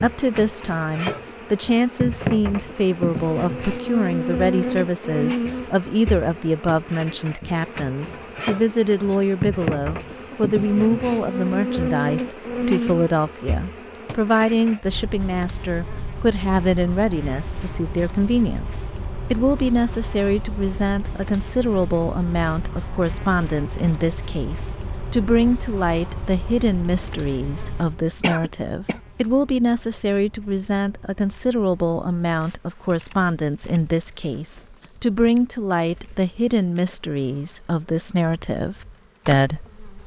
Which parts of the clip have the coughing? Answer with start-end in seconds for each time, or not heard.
28.2-29.0.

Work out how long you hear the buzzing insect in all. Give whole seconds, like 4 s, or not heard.
40 s.